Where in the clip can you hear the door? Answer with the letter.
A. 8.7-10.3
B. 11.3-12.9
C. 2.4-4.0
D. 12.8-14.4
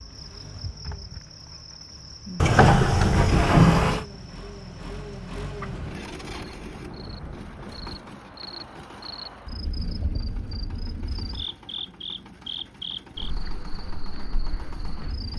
C.